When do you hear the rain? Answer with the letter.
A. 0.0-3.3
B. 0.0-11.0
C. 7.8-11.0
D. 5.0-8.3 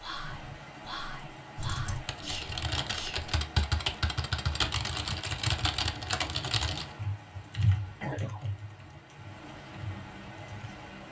B.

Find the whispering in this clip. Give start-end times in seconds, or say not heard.
0.0-3.3.